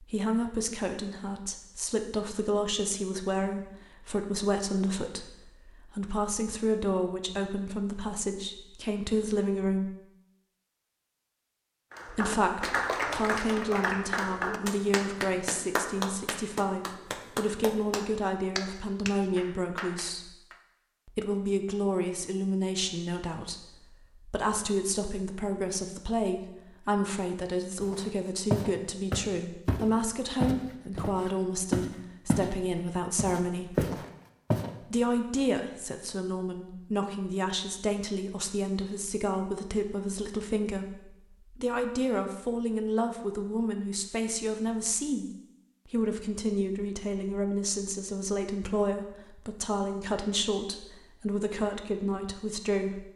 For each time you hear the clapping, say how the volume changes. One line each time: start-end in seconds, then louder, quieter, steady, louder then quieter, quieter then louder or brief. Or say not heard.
11.9-20.6 quieter.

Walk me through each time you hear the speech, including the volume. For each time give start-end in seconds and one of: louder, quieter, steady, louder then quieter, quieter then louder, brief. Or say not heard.
0.0-9.9 steady
12.1-20.3 steady
21.1-33.9 steady
34.9-53.0 steady.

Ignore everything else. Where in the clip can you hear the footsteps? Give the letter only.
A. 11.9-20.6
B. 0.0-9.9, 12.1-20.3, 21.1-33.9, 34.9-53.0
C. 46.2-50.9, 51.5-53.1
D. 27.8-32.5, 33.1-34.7
D.